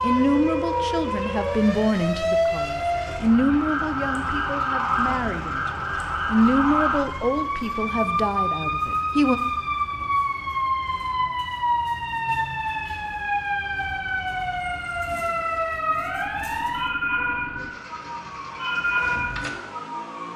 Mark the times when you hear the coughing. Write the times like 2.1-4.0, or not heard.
not heard.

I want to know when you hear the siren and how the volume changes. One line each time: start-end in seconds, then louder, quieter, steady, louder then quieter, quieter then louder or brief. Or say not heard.
0.0-20.3 steady.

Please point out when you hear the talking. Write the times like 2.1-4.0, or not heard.
0.0-9.4.